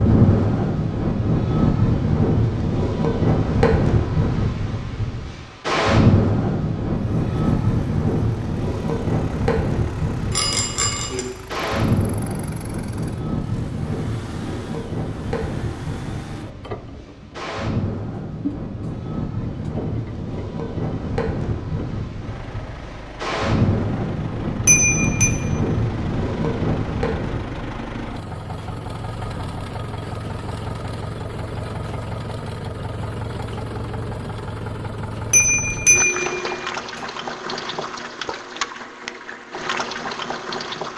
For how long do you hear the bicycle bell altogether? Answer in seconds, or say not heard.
3 s.